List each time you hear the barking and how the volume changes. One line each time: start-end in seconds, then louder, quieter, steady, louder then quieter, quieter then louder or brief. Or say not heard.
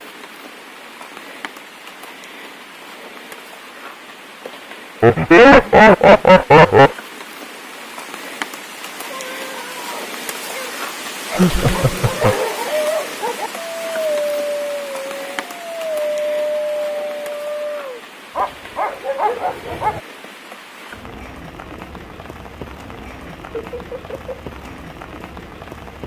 9.1-20.0 louder.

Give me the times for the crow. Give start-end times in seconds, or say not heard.
not heard.